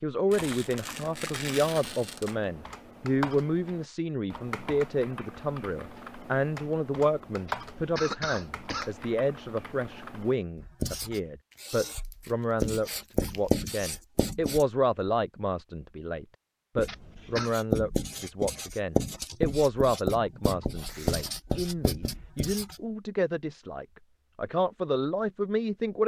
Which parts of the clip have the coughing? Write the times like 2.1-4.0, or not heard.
7.5-8.9, 16.9-17.6.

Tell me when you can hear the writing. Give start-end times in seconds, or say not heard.
10.6-14.7, 16.8-22.8.